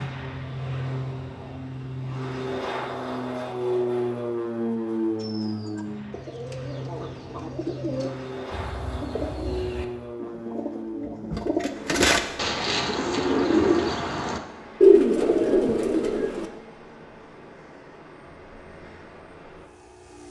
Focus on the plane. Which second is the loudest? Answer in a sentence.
The loudest moment of the plane is at 4 seconds.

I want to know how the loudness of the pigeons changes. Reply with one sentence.
The volume of the pigeons goes up.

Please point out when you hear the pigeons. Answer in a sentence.
The pigeons can be heard from 5.2 to 16.4 s.